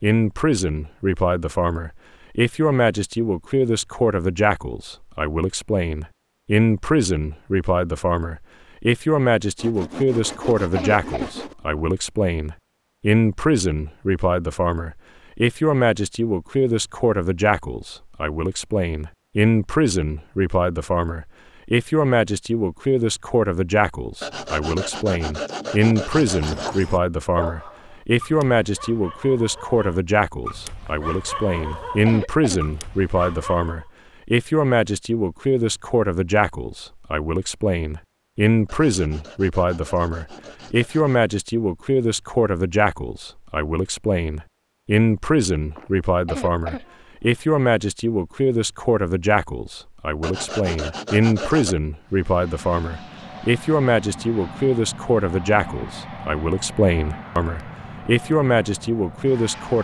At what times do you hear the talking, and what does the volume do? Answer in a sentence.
You can hear the talking from 0.0 to 59.8 s, at a steady volume.